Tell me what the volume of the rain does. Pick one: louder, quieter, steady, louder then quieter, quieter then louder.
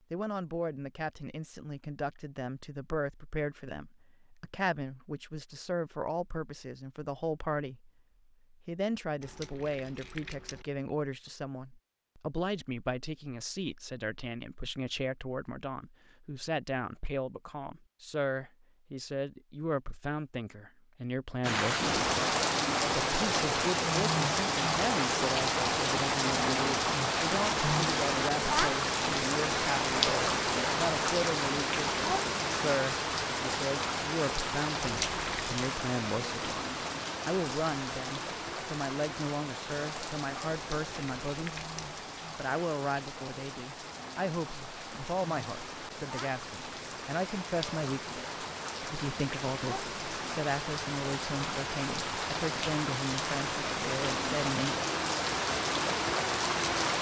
quieter then louder.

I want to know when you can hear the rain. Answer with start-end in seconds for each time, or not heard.
21.4-56.9.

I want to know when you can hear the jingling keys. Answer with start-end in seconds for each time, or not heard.
9.2-10.7, 34.8-35.6, 40.5-41.9.